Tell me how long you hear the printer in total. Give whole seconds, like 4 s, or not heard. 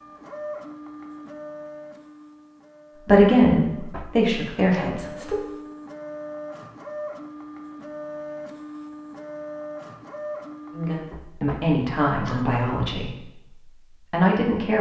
11 s.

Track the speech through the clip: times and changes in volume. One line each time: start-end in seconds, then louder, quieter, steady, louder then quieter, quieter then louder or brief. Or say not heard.
3.0-5.4 brief
10.7-14.7 quieter then louder.